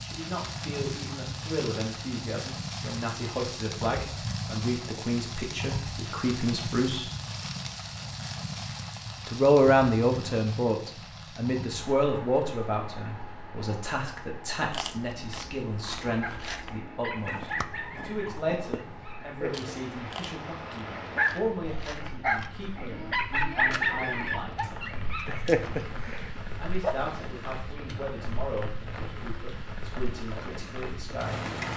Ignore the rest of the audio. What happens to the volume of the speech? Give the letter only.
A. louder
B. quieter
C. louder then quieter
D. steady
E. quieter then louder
C.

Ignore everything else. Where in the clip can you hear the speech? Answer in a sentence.
The speech can be heard from 0.0 to 7.1 s, from 9.2 to 24.8 s and from 26.6 to 31.5 s.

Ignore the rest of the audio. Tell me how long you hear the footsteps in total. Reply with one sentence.
You can't hear the footsteps here.